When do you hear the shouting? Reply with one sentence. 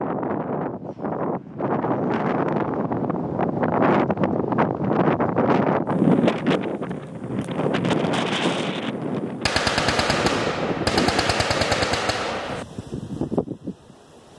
You can't hear the shouting here.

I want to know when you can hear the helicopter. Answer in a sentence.
The helicopter can't be heard in this clip.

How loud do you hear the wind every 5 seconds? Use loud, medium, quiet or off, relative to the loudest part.
loud, loud, medium.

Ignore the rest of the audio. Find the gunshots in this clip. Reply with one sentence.
The gunshots can be heard from 9.4 to 12.7 s.